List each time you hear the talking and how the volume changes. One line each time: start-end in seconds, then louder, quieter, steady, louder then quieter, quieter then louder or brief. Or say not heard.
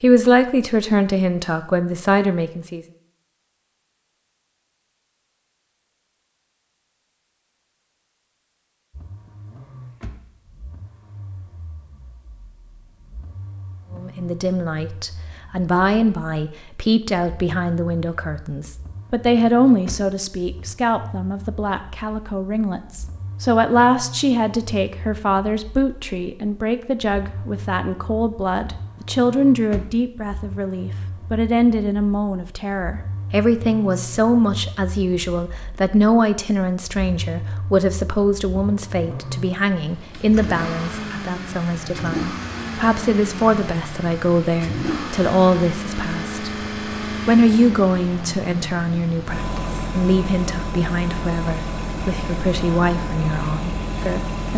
0.0-2.8 brief
13.9-54.5 steady.